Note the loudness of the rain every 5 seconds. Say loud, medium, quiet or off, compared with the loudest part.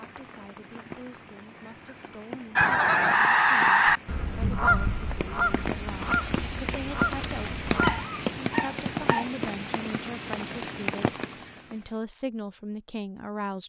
quiet, loud, loud.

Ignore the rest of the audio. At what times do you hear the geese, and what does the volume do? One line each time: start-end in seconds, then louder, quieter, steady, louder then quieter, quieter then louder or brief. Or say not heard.
2.5-8.1 quieter.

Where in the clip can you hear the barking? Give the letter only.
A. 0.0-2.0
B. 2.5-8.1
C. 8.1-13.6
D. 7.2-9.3
D.